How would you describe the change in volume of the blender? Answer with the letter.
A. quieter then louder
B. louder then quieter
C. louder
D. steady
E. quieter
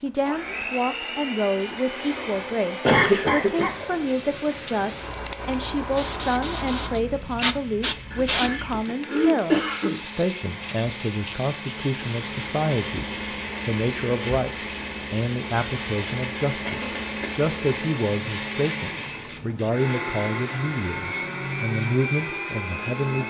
A.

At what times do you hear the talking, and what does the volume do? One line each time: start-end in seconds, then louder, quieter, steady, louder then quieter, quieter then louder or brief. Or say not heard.
0.0-23.2 steady.